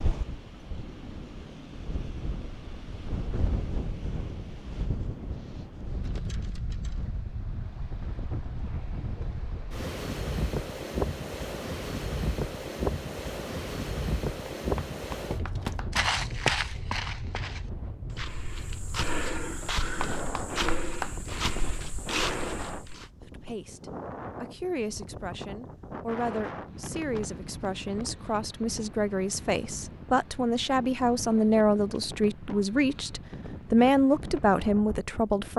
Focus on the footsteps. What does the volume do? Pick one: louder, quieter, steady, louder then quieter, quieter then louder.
quieter then louder.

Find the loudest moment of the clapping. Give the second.
21 s.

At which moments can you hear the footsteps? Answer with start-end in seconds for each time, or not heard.
15.2-23.1.